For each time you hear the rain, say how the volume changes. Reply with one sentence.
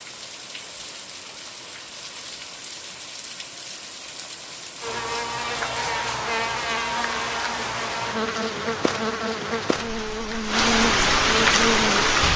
The rain can be heard from 0.0 to 12.3 s, getting louder.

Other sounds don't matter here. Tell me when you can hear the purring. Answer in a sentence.
The purring can't be heard in this clip.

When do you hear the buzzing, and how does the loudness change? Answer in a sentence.
The buzzing can be heard from 4.8 to 12.1 s, at a steady volume.